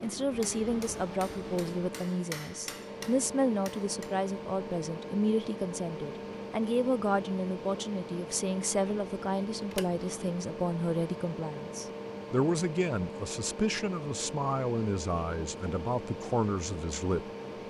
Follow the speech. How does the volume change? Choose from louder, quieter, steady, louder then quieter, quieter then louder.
steady.